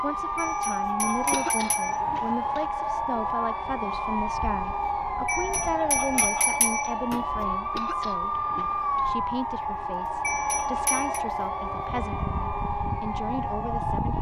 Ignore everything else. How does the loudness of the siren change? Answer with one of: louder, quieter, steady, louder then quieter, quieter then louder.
steady.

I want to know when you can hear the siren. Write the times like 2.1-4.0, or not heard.
0.0-14.1.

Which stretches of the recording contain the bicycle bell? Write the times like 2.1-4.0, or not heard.
0.3-2.0, 5.2-7.2, 10.2-11.2.